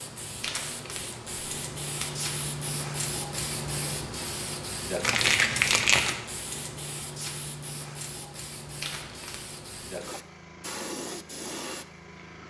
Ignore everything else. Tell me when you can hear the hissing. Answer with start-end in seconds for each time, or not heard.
0.0-12.4.